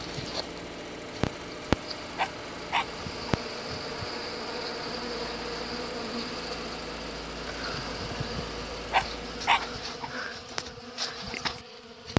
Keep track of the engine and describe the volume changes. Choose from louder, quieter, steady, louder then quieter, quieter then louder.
steady.